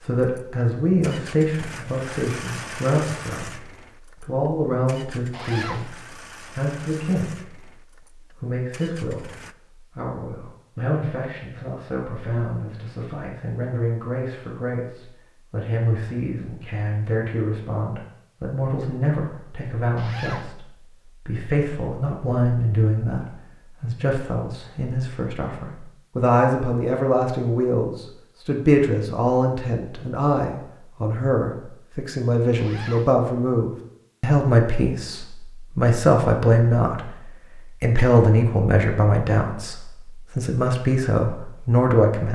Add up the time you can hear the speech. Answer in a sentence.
The speech can be heard for 42 seconds in total.